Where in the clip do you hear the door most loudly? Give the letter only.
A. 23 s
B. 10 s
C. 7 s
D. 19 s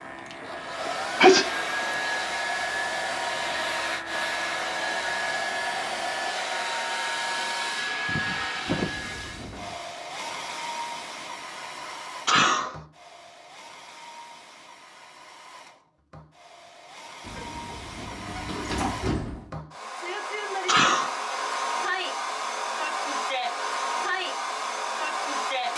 D.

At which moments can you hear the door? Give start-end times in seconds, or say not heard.
8.7-9.8, 17.2-19.6.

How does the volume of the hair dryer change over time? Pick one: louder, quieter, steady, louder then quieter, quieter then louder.
quieter then louder.